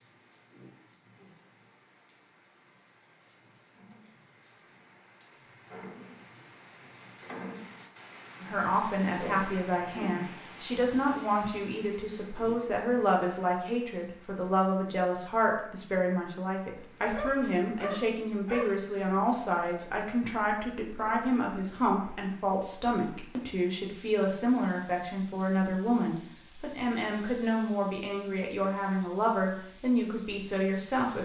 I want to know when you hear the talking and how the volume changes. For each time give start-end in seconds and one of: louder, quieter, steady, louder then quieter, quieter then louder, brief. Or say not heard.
8.4-31.2 steady.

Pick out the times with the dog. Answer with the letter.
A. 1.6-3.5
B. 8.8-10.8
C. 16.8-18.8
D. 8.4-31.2
C.